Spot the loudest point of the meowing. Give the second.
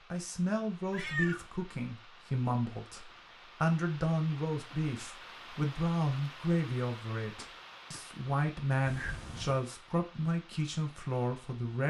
1 s.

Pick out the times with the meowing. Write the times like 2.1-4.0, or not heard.
0.9-1.4, 8.8-9.7.